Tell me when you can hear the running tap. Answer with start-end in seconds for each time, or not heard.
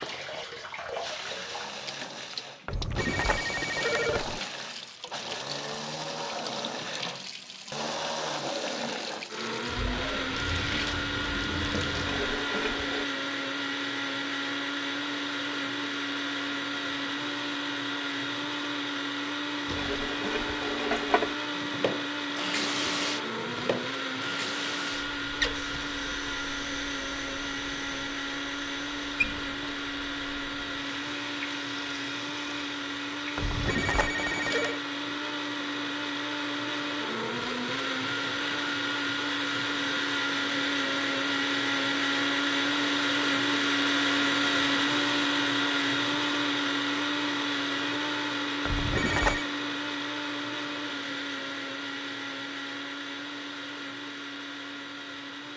0.0-13.1, 19.6-33.6.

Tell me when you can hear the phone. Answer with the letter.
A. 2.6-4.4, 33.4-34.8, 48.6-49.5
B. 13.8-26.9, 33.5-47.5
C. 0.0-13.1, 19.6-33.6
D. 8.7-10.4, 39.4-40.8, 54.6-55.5
A.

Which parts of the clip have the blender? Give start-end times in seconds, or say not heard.
0.0-55.5.